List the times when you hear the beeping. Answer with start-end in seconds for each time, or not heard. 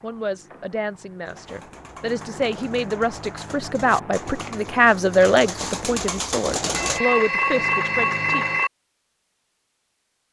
6.7-8.7.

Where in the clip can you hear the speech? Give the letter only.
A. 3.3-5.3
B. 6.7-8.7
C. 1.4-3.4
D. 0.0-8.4
D.